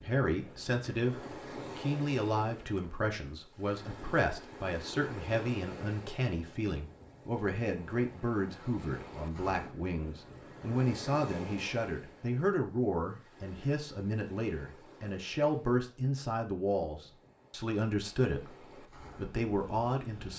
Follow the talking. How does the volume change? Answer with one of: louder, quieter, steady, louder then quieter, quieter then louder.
steady.